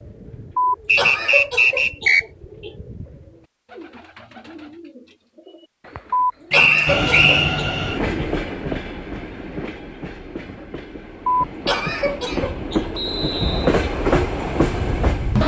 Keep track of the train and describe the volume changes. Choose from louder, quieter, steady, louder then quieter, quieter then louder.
quieter then louder.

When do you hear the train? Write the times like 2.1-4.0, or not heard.
6.8-15.4.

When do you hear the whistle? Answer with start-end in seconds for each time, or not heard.
0.8-2.2, 6.5-7.5, 12.9-13.8.